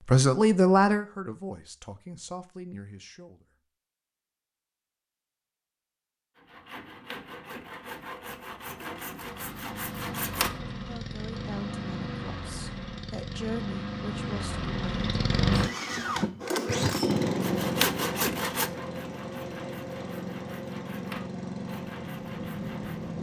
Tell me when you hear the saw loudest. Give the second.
18 s.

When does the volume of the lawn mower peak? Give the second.
17 s.